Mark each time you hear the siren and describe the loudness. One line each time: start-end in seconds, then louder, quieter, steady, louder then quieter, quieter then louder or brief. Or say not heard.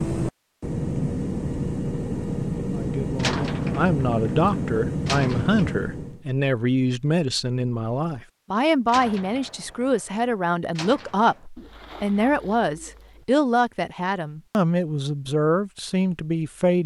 not heard.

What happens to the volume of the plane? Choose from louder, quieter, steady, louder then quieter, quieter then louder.
steady.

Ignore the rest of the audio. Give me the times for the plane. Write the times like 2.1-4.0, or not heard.
0.0-6.2.